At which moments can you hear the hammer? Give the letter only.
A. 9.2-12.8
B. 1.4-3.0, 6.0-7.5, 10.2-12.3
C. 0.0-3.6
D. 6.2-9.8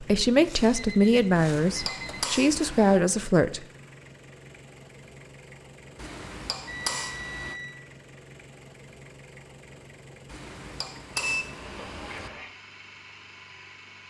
B.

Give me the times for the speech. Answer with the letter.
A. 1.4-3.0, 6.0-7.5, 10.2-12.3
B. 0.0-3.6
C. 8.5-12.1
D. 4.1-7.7
B.